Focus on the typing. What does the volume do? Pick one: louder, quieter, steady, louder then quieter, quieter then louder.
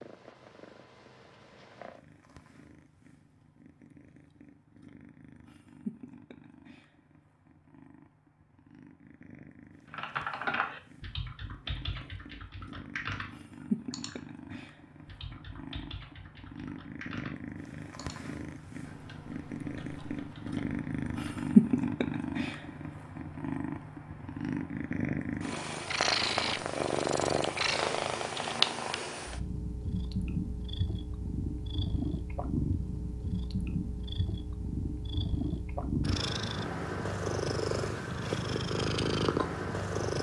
quieter.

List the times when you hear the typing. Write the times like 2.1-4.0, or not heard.
9.9-13.3, 13.9-17.4, 17.9-21.6.